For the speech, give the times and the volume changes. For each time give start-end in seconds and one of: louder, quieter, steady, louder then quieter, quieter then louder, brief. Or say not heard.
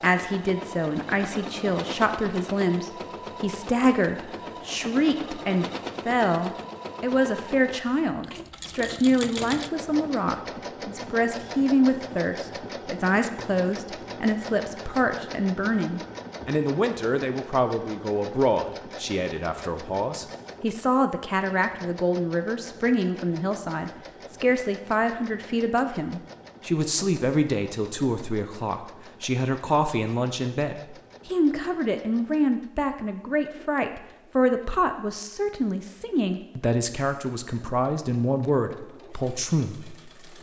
0.0-40.1 steady.